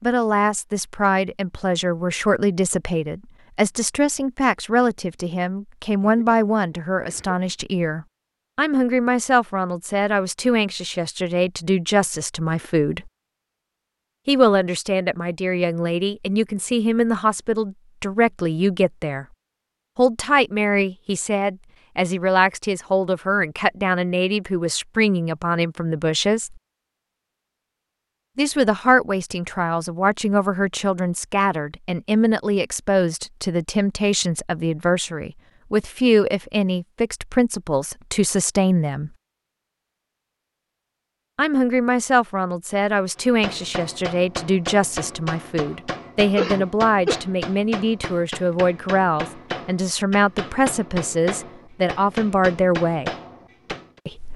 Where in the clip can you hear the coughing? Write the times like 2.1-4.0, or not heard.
6.0-6.4, 7.0-7.5, 46.4-47.2.